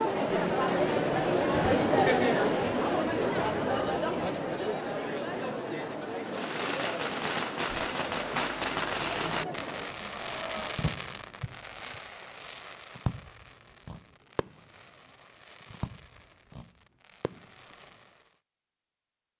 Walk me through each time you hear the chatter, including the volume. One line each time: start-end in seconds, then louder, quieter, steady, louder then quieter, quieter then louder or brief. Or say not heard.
0.0-10.8 quieter.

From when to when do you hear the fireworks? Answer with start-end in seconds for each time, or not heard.
6.2-18.2.